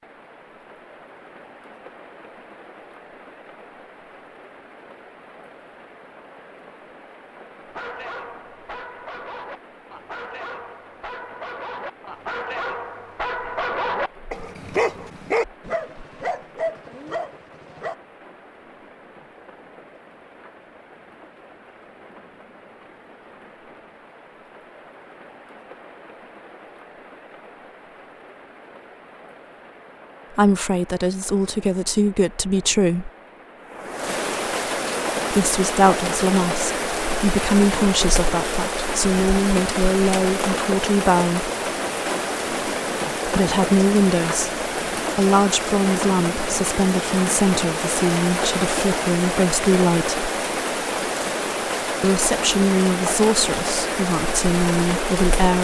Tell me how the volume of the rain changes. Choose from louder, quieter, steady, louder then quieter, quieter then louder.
louder.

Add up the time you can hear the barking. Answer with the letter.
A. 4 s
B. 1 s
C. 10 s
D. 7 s
C.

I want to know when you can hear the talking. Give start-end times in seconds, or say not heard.
30.4-33.1, 35.3-41.5, 43.2-50.3, 52.0-55.5.